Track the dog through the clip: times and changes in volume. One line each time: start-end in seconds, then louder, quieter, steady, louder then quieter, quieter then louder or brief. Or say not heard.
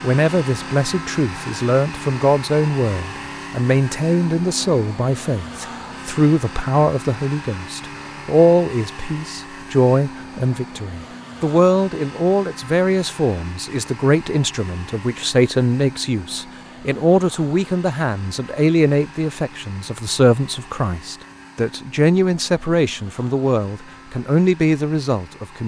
not heard.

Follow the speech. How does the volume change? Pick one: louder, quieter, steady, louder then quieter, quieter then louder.
steady.